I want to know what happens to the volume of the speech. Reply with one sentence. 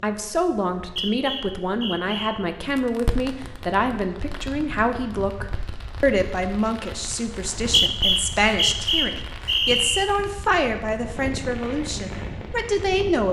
The volume of the speech stays about the same.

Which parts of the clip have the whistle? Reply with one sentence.
The whistle can be heard from 0.7 to 2.3 s and from 7.3 to 10.1 s.